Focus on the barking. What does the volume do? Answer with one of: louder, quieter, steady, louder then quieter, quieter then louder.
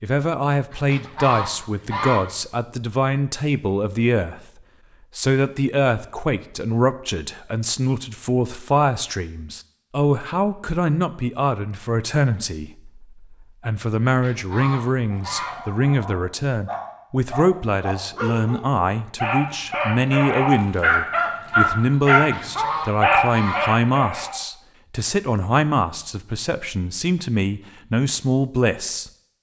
louder.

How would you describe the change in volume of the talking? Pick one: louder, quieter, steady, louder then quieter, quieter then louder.
steady.